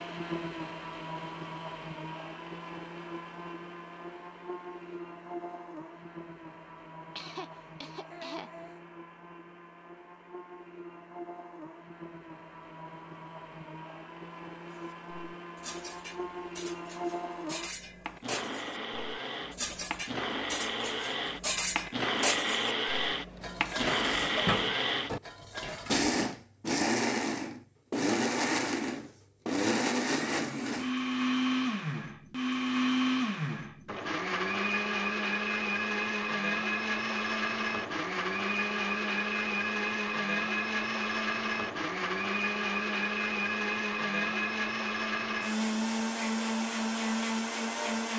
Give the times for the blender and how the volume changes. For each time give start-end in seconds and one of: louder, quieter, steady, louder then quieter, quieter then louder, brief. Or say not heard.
0.0-48.1 louder.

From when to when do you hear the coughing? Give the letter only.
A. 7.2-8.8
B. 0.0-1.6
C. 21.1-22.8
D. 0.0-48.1
A.